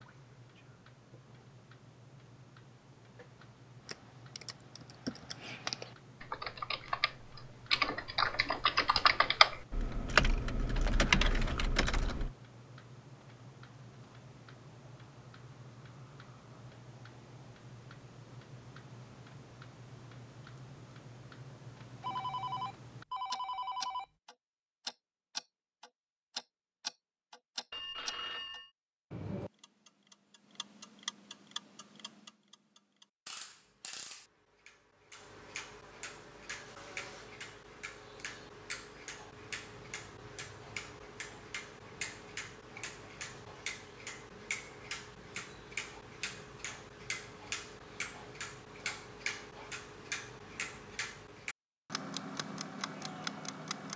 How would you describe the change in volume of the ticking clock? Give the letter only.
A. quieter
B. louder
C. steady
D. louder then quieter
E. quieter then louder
B.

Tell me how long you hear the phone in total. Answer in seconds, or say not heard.
3 s.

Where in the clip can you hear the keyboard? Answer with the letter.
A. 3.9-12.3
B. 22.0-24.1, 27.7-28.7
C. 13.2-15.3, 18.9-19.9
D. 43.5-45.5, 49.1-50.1
A.